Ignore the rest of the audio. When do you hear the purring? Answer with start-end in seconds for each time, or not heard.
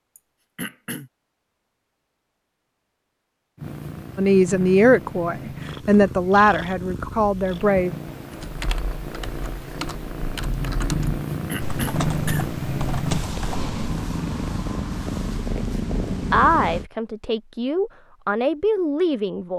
3.5-16.9.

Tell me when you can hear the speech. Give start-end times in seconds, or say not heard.
4.2-7.9, 16.3-19.5.